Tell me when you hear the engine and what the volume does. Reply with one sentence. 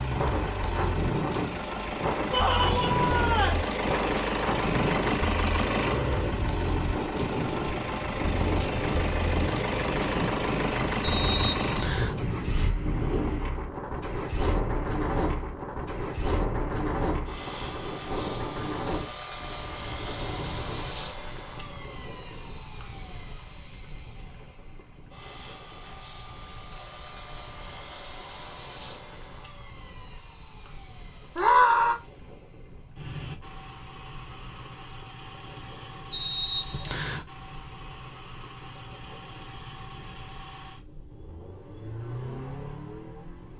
The engine can be heard from 0.0 to 43.5 s, getting quieter.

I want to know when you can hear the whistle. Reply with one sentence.
The whistle can be heard from 11.0 to 12.2 s and from 36.1 to 37.2 s.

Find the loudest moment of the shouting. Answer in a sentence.
The volume of the shouting peaks at 32 seconds.